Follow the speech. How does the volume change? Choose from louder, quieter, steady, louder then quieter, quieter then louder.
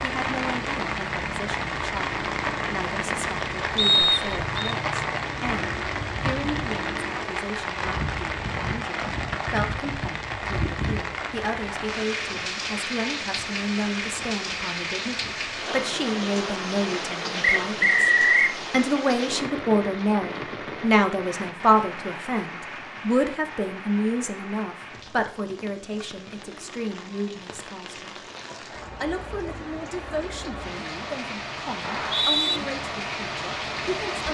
louder then quieter.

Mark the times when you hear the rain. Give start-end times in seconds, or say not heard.
0.0-34.2.